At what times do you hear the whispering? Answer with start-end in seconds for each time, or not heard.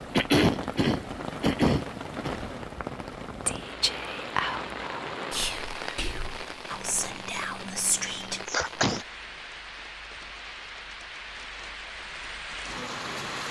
3.2-8.4.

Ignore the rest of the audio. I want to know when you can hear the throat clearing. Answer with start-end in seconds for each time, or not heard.
0.1-2.3, 8.1-9.1.